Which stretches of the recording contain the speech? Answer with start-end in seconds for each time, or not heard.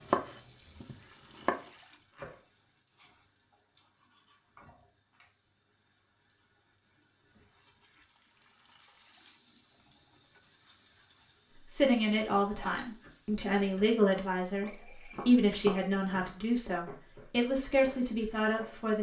11.7-18.9.